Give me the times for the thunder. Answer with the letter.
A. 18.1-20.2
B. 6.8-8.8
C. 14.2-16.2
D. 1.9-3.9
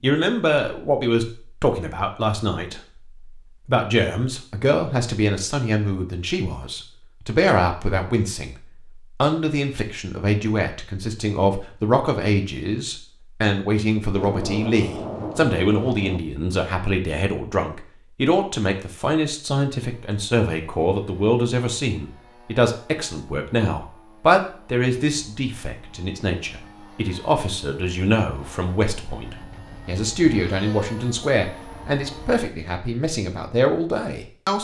C.